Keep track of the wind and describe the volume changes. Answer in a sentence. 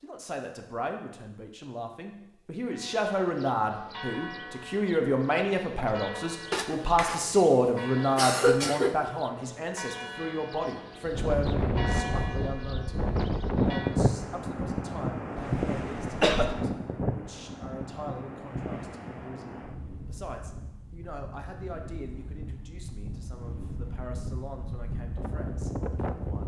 The loudness of the wind goes down, then up.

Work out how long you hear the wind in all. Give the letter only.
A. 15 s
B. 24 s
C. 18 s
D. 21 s
A.